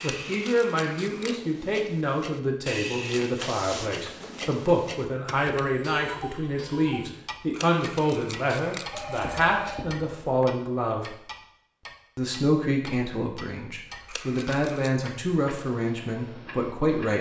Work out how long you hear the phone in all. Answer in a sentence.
You can hear the phone for 3 seconds altogether.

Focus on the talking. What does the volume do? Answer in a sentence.
The volume of the talking stays about the same.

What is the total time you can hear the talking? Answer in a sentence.
The talking can be heard for 16 seconds in total.